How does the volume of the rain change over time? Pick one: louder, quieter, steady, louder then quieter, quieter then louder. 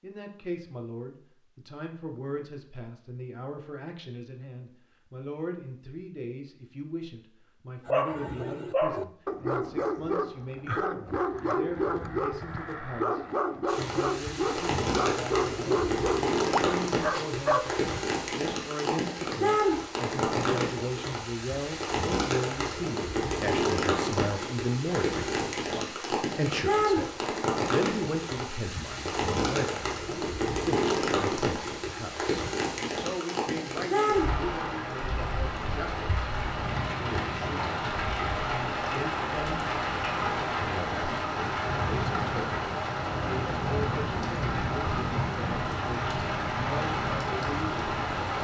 steady.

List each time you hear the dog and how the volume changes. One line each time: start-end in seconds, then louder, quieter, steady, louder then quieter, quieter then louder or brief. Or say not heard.
7.8-17.7 steady.